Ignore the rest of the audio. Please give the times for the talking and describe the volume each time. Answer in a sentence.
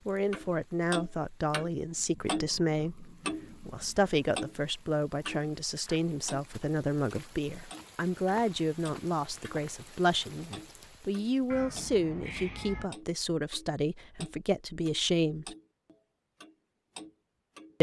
The talking can be heard from 0.1 to 15.6 s, at a steady volume.